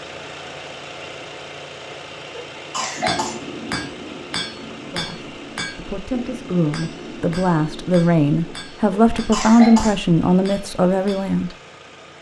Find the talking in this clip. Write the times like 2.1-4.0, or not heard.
4.9-11.6.